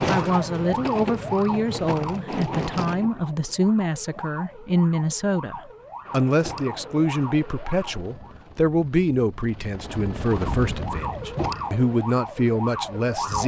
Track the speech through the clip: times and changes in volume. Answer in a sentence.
You can hear the speech from 0.1 to 13.4 s, at a steady volume.